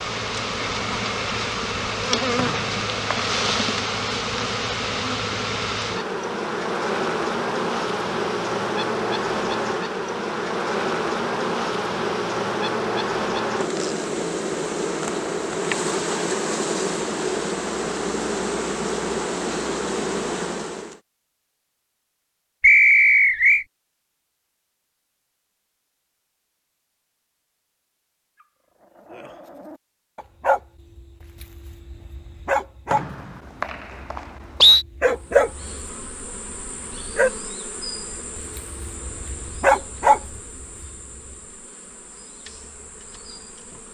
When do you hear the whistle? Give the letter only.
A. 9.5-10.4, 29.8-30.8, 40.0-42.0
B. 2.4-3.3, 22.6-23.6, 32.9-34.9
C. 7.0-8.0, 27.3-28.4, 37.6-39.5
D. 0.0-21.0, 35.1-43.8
B.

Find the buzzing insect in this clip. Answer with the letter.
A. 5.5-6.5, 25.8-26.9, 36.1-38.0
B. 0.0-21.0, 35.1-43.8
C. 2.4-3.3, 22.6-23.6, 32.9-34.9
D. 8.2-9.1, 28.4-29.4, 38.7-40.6
B.